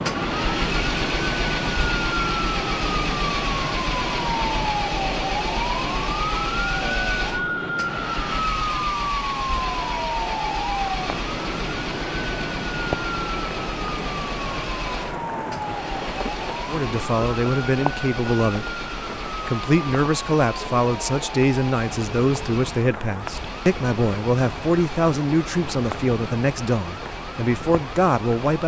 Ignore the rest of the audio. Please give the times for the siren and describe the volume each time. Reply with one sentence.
You can hear the siren from 0.0 to 28.6 s, getting quieter.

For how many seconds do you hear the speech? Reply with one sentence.
You can hear the speech for 12 seconds altogether.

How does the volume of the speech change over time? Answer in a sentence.
The volume of the speech stays about the same.